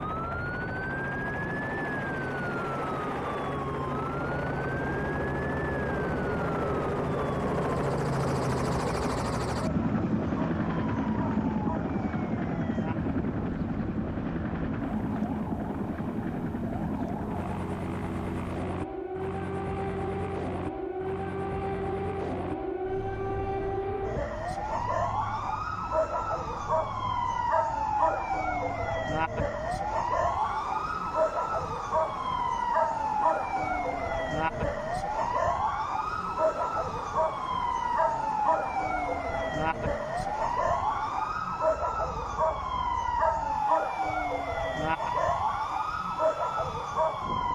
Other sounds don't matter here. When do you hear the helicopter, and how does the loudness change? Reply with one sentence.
You can hear the helicopter from 0.0 to 47.5 s, getting quieter.